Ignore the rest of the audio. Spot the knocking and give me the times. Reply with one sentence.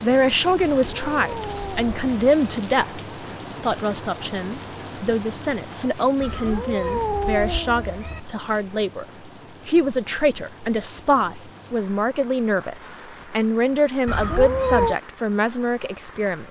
You can't hear the knocking here.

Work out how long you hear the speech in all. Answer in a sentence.
The speech can be heard for 15 seconds in total.